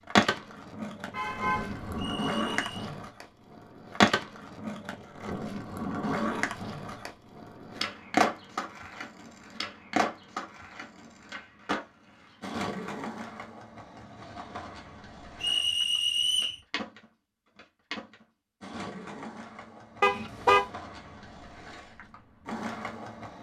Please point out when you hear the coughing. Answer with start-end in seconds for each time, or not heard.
not heard.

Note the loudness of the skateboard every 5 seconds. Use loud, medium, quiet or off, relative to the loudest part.
loud, loud, medium, quiet, quiet.